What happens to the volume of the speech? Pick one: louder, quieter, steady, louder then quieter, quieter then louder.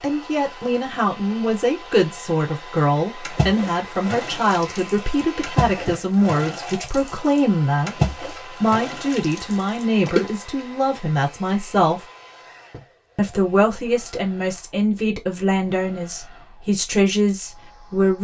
steady.